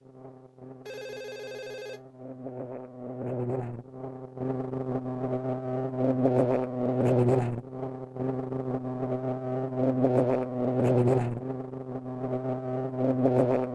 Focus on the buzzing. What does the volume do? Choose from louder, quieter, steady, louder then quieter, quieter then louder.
louder.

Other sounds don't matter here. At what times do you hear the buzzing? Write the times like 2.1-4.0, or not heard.
0.0-13.6.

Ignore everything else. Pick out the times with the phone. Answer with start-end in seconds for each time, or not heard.
0.8-2.0.